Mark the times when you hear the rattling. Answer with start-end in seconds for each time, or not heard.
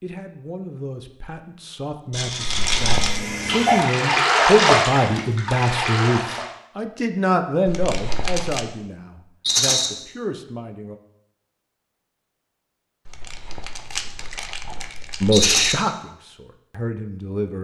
2.1-3.1, 9.4-9.9, 15.3-15.8.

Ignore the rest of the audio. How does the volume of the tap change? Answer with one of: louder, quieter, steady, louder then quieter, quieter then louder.
louder then quieter.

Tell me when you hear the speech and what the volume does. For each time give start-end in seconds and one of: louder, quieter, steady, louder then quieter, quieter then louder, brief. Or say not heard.
0.0-11.0 louder then quieter
15.2-17.5 brief.